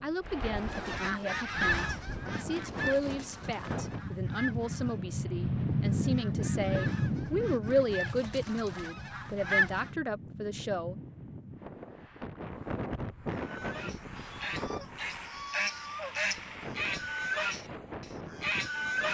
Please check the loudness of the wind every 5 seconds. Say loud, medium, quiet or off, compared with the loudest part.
medium, loud, medium, medium.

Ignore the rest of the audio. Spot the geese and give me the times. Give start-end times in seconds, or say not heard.
0.2-9.9, 13.3-19.0.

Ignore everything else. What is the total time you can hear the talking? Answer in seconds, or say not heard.
11 s.